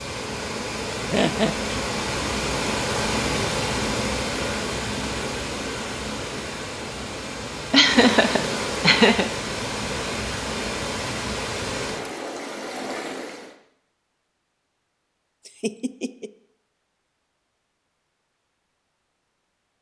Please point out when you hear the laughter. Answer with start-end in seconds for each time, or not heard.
1.1-1.8, 7.7-9.3, 15.4-16.3.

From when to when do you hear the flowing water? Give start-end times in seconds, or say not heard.
0.0-13.6.